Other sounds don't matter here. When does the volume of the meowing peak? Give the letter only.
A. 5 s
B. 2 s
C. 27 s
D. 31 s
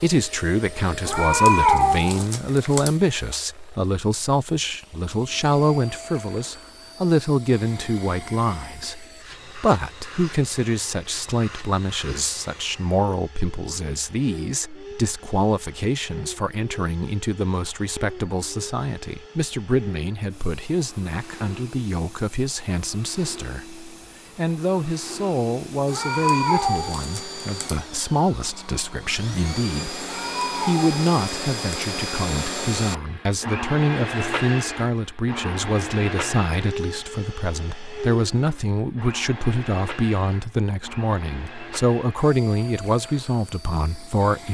B.